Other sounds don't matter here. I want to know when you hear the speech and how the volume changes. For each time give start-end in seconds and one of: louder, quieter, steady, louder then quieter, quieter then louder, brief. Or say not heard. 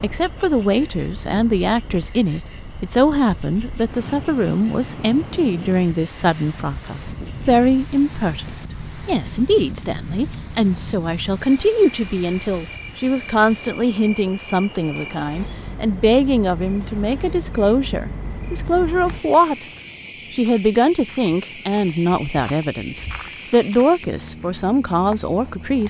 0.0-19.6 steady
20.3-25.8 quieter then louder.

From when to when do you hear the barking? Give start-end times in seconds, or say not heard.
not heard.